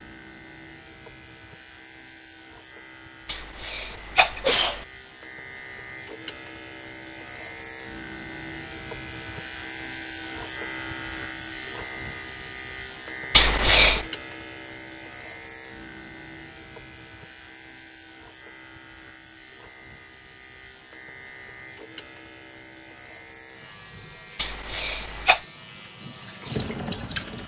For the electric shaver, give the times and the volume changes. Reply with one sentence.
The electric shaver can be heard from 0.0 to 27.4 s, getting louder then quieter.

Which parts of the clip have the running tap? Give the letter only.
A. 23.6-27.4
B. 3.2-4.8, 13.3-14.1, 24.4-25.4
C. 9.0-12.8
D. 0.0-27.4
A.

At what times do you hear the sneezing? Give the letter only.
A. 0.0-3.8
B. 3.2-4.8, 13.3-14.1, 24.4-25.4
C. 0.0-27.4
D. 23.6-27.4
B.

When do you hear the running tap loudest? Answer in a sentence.
The loudest moment of the running tap is at 27 seconds.